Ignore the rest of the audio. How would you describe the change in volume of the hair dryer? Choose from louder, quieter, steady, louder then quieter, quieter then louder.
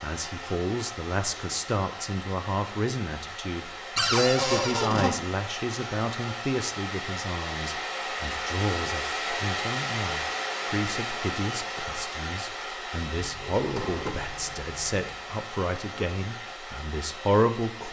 louder then quieter.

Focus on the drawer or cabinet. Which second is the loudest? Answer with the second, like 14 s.
4 s.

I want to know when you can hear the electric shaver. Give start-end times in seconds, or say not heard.
not heard.